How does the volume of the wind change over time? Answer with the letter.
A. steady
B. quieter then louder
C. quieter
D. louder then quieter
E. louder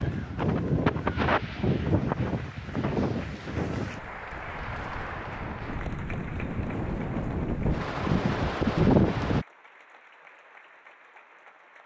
B.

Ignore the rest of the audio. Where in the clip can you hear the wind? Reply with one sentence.
You can hear the wind from 0.0 to 9.4 s.